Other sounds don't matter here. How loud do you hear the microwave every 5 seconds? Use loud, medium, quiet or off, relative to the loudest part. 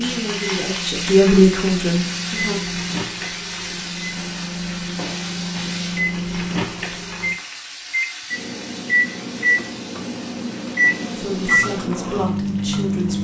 medium, loud, loud.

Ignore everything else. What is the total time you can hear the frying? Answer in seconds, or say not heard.
13 s.